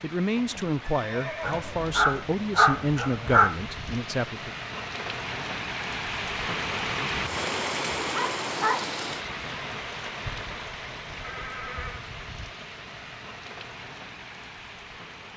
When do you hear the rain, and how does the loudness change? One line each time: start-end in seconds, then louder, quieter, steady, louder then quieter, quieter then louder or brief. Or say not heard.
0.0-15.3 louder then quieter.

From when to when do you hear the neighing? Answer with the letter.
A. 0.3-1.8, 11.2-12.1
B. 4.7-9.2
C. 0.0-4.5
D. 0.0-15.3
A.